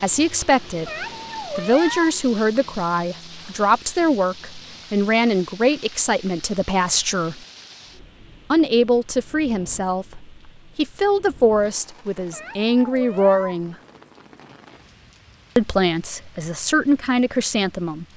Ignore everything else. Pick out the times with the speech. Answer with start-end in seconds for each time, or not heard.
0.0-7.4, 8.5-13.8, 15.6-18.1.